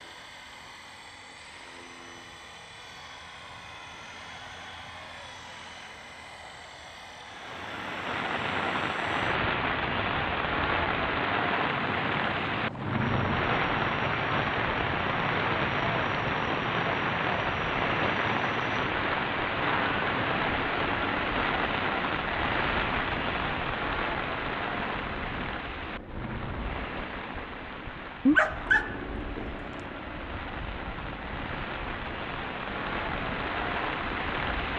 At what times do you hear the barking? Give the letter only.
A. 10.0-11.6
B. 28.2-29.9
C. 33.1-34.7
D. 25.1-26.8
B.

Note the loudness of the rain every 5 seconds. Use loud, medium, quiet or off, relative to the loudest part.
off, loud, loud, loud, loud, medium, medium.